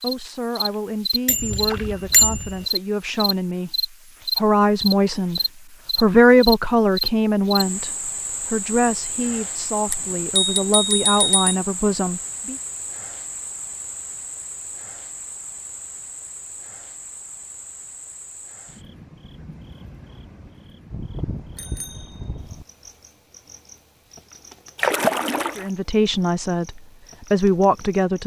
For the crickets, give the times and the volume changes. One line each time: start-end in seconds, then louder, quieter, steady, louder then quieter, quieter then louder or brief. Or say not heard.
0.0-28.2 quieter.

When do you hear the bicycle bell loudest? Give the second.
2 s.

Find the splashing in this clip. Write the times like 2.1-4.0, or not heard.
1.5-2.0, 24.8-25.7.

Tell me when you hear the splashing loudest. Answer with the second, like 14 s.
25 s.